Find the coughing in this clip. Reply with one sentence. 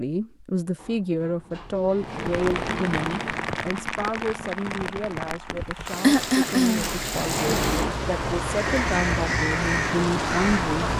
You can hear the coughing from 6.0 to 7.0 s.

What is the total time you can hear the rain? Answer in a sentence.
You can hear the rain for 9 seconds altogether.